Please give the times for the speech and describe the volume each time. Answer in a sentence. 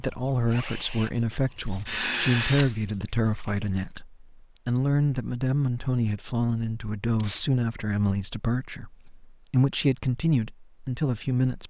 The speech can be heard from 0.0 to 11.6 s, at a steady volume.